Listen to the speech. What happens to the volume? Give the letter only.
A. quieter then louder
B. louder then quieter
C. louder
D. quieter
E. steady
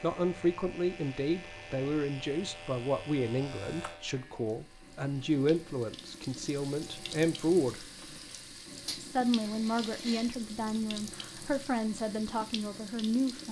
E.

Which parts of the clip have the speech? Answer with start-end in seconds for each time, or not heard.
0.0-7.8, 9.0-13.4.